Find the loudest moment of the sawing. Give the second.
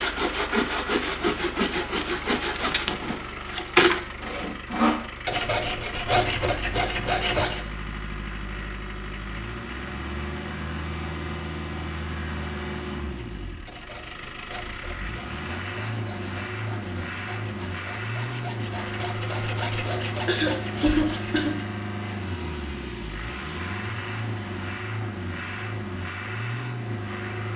4 s.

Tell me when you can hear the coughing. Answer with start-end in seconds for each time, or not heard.
20.2-21.6.